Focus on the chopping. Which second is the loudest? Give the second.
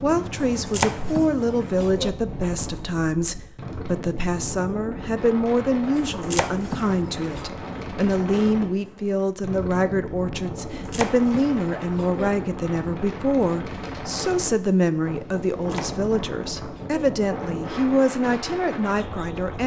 1 s.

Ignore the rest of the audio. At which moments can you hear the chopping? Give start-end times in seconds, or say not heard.
0.5-2.1, 6.0-7.5, 10.7-12.3, 15.6-17.1.